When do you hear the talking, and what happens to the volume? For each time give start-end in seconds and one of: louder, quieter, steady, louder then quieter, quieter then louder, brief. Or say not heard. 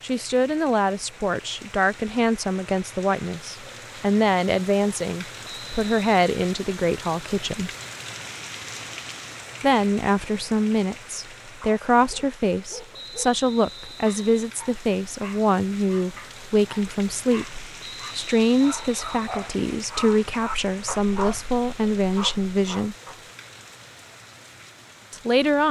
0.0-7.7 steady
9.6-22.9 steady
25.1-25.6 brief.